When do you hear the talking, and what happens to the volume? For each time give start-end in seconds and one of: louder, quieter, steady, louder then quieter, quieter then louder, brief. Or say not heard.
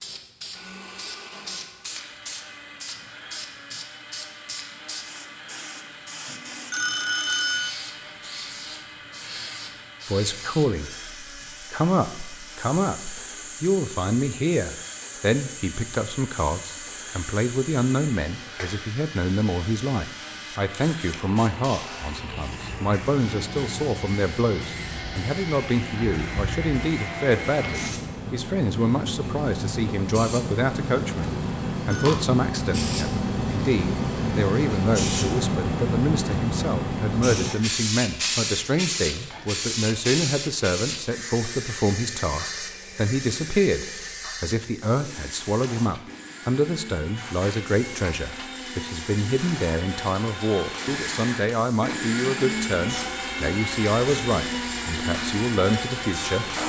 10.1-56.6 steady.